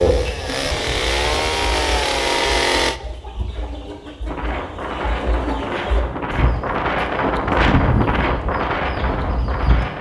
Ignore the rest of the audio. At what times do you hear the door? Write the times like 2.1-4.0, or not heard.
not heard.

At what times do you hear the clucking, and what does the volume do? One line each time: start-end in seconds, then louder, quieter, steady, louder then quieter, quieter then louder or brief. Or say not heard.
0.0-9.8 louder.